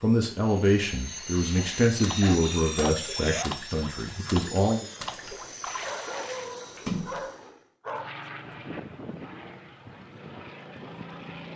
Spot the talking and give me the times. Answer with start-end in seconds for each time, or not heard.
0.0-4.8.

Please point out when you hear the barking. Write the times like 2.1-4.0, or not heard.
2.0-3.6, 5.8-8.2.